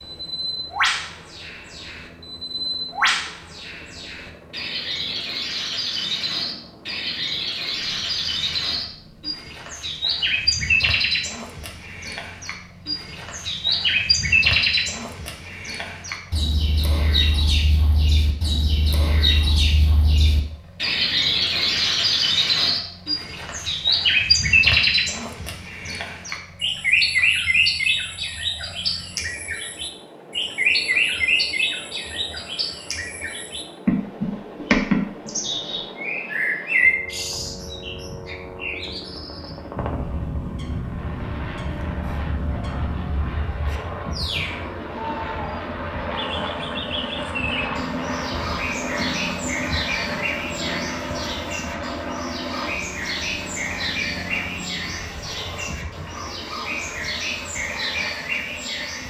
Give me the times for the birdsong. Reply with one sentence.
The birdsong can be heard from 0.0 to 59.0 s.